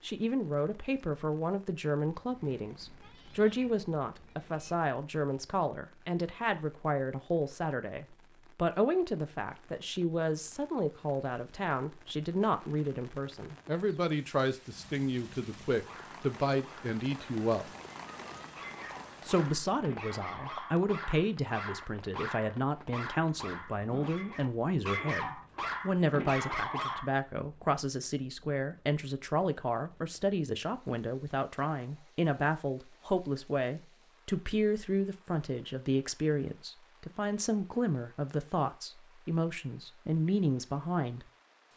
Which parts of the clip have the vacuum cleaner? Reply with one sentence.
You can't hear the vacuum cleaner here.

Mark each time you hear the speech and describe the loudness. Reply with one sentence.
The speech can be heard from 0.0 to 17.7 s, at a steady volume; and from 19.2 to 41.2 s, at a steady volume.